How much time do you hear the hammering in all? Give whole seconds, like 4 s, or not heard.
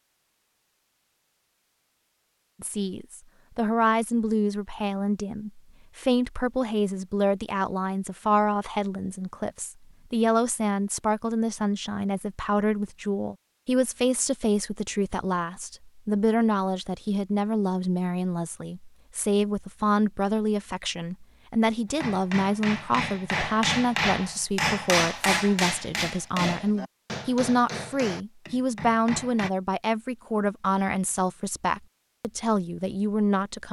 8 s.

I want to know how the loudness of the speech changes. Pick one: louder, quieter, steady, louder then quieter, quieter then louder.
steady.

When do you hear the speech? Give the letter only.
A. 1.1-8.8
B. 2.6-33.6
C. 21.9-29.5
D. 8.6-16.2
B.